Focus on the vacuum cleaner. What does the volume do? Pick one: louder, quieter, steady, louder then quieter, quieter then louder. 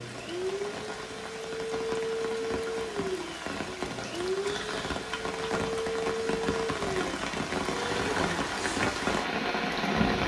steady.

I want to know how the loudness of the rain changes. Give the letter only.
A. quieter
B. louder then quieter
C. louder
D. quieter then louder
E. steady
C.